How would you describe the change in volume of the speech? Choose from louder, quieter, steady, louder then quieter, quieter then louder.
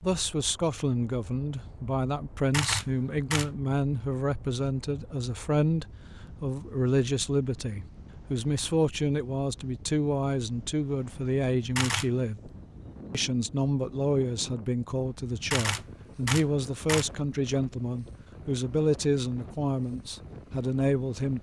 steady.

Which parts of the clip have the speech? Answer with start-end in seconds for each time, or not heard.
0.0-12.5, 13.1-21.3.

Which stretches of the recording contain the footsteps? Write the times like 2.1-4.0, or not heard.
not heard.